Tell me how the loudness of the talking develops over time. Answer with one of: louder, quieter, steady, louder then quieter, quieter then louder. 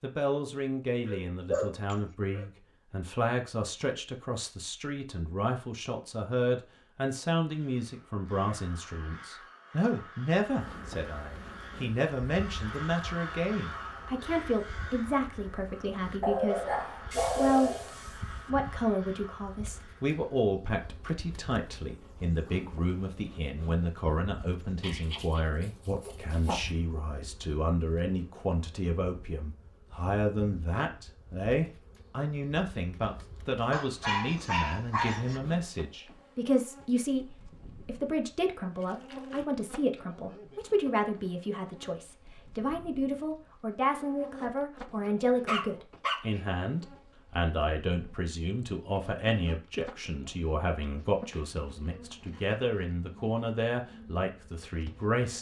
steady.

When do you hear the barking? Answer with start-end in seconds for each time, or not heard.
1.1-2.5, 16.2-17.9, 24.8-26.6, 33.7-35.4, 45.5-46.4.